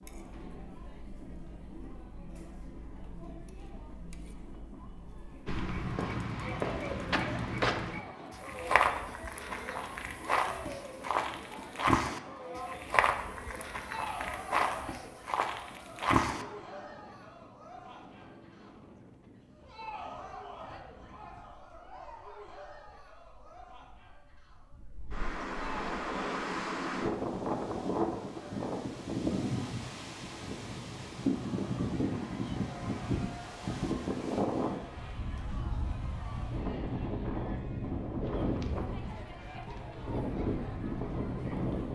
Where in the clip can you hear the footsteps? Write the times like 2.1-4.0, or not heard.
5.5-16.4.